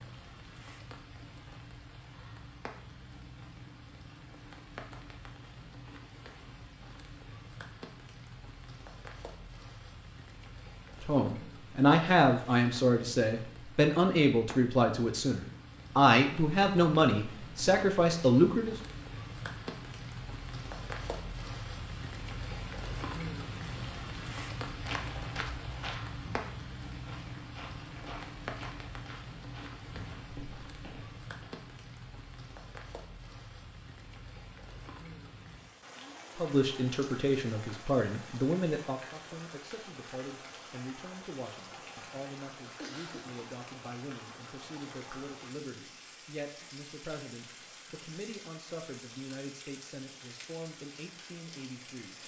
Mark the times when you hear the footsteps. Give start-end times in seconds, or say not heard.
24.6-31.5.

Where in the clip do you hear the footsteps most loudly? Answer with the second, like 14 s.
25 s.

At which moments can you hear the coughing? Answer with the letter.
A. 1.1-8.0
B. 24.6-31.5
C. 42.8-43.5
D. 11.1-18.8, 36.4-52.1
C.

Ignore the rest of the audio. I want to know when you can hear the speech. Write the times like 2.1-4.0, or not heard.
11.1-18.8, 36.4-52.1.